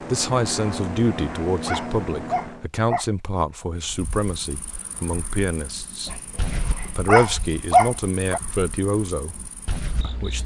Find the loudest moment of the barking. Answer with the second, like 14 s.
8 s.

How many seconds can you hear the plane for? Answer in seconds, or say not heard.
3 s.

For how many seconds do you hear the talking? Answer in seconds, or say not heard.
9 s.